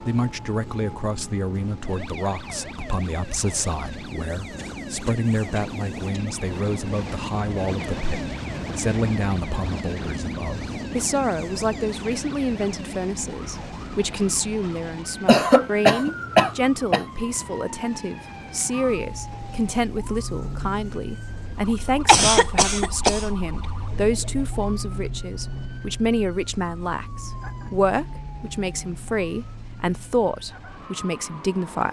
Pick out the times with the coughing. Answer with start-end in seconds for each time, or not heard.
4.5-6.3, 15.2-17.1, 22.1-23.2.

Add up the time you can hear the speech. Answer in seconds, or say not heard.
32 s.